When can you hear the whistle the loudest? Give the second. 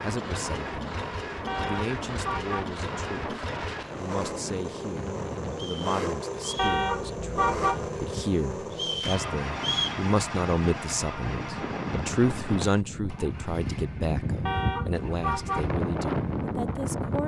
10 s.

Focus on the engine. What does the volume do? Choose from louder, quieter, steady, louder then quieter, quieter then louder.
quieter.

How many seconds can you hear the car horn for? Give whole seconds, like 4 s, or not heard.
4 s.